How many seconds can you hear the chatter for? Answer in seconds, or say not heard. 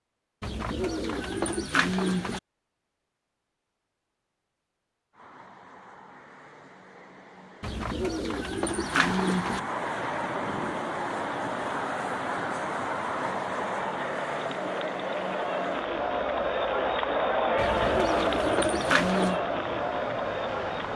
11 s.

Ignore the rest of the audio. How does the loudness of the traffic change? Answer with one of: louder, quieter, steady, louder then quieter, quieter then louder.
louder then quieter.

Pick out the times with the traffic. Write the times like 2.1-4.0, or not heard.
5.1-20.9.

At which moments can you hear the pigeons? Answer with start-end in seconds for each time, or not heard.
0.4-2.4, 7.6-9.6, 17.6-19.4.